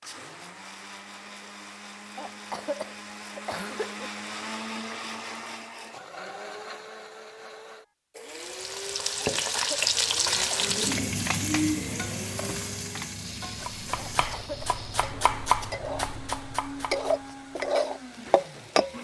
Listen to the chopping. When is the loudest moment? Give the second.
15 s.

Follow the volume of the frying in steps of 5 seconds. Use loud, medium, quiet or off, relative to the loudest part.
off, loud, loud, loud.